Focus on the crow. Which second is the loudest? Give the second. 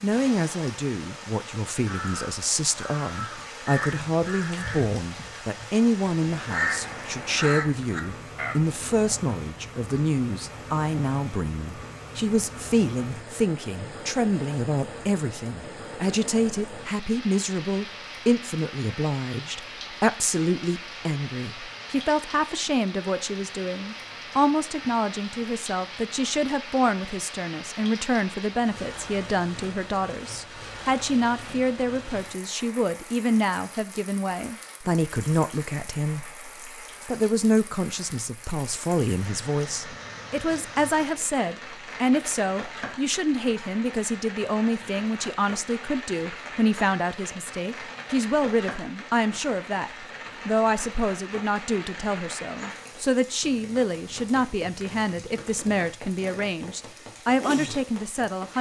7 s.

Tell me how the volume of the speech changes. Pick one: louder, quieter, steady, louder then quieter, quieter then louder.
steady.